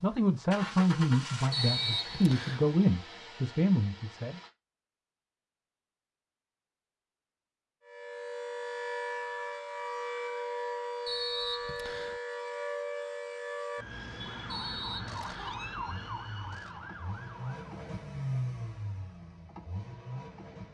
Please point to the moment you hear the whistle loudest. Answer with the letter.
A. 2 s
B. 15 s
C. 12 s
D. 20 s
A.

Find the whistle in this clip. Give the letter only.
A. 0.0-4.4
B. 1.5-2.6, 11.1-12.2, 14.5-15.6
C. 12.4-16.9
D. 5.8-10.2
B.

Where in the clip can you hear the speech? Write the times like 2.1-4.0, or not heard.
0.0-4.4.